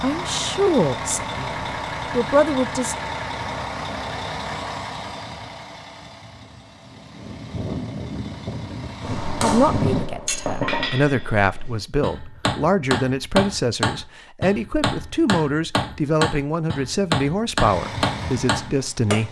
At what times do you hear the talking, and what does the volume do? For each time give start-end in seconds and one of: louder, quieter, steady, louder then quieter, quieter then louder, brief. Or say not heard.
0.0-3.0 brief
9.4-19.2 steady.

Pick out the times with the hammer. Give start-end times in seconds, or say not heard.
9.0-19.2.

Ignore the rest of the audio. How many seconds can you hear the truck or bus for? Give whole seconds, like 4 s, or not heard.
12 s.